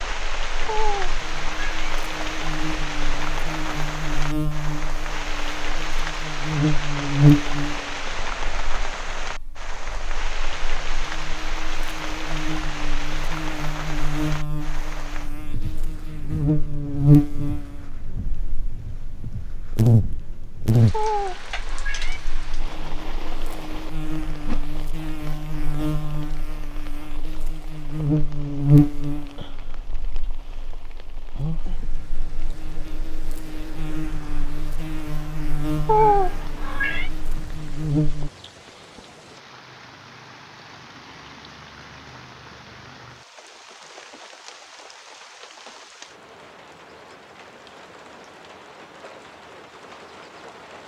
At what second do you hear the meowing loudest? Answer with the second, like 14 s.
36 s.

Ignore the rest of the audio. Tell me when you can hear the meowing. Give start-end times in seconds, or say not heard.
0.7-1.9, 20.9-22.2, 35.9-37.1.